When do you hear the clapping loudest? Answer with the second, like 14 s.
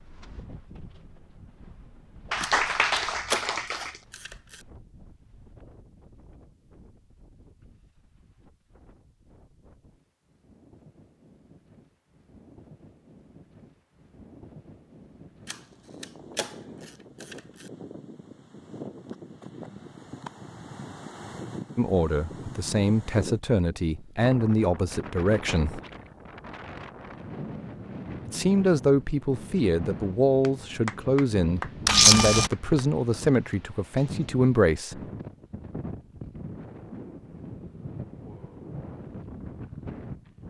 3 s.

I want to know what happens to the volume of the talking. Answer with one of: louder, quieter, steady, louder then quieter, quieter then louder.
steady.